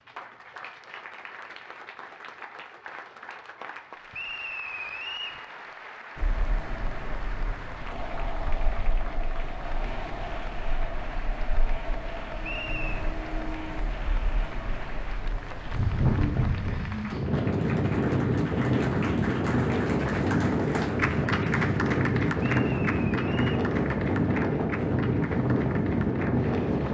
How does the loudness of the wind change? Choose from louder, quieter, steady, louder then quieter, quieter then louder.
louder.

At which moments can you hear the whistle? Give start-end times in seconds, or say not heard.
4.1-5.4, 12.4-13.1, 22.6-23.6.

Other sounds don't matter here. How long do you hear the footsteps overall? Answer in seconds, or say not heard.
not heard.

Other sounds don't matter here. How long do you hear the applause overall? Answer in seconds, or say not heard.
27 s.